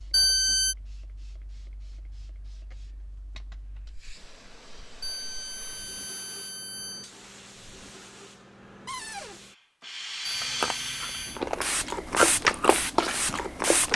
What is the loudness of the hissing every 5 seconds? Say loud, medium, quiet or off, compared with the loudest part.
quiet, quiet, loud.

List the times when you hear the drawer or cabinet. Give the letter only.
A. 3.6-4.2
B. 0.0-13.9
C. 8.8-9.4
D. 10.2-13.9
C.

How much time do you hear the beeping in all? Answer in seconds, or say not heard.
4 s.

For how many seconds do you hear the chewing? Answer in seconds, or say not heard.
4 s.